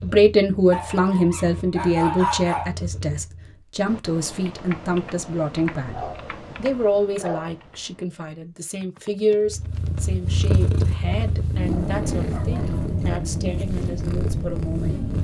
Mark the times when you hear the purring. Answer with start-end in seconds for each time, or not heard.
0.0-3.6, 9.4-15.1.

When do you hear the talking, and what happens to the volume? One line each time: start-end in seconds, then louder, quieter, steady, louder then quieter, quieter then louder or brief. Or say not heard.
0.0-15.0 quieter.